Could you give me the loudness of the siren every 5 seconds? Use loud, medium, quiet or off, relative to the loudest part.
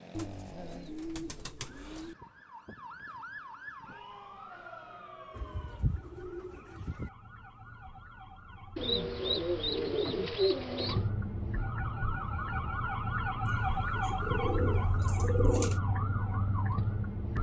quiet, quiet, loud, loud.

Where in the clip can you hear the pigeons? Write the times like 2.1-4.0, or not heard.
0.1-2.1, 5.3-7.1, 8.8-11.1, 13.4-15.8.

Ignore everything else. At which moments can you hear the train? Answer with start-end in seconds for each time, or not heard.
not heard.